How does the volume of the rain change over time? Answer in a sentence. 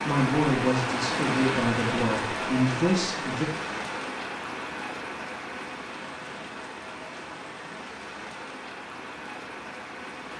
The volume of the rain goes down.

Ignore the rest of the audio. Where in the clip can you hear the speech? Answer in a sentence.
You can hear the speech from 0.1 to 3.5 s.